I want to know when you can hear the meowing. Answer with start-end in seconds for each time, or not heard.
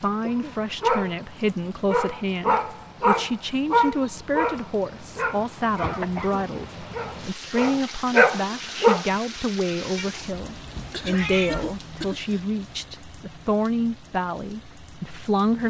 9.9-11.9.